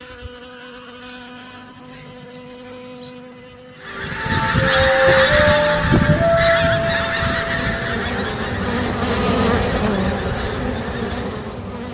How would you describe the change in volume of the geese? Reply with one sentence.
The loudness of the geese goes down.